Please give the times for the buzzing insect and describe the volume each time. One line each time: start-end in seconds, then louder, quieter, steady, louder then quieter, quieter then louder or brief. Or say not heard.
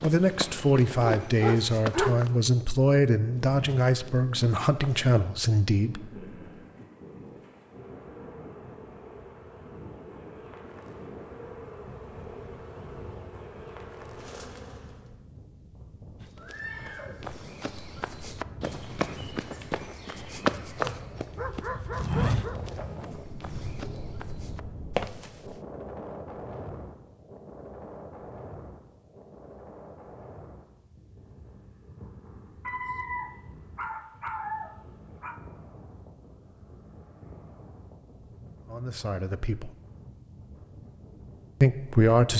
5.9-15.2 louder.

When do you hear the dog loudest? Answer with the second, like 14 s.
2 s.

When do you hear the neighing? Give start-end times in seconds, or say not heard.
16.4-17.8.